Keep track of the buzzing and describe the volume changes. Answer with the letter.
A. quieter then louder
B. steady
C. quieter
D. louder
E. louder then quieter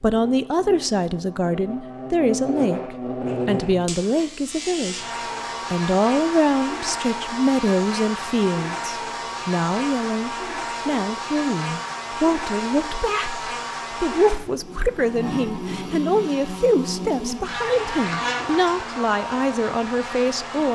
B.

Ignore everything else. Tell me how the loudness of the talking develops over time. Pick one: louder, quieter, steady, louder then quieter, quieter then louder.
steady.